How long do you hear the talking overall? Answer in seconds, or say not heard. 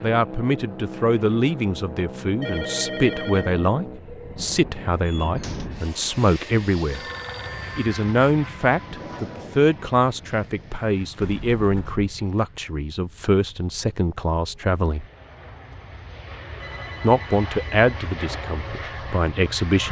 17 s.